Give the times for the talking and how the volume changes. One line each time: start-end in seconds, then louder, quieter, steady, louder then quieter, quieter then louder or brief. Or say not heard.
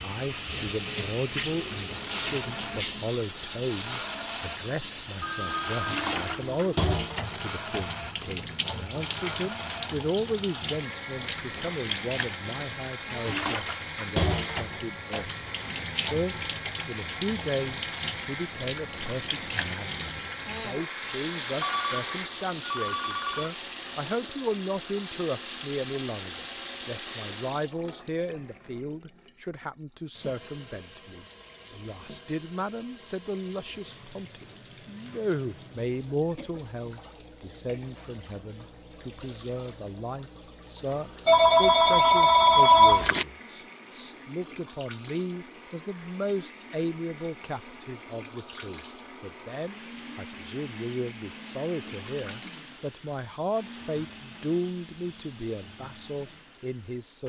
0.0-57.2 steady.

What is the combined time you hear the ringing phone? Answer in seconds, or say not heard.
5 s.